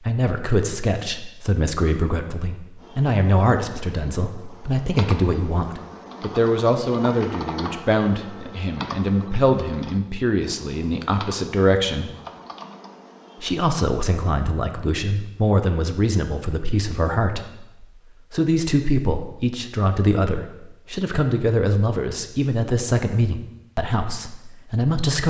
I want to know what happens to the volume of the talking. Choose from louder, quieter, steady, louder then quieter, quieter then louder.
steady.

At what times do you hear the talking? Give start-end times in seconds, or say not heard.
0.1-12.1, 13.4-25.2.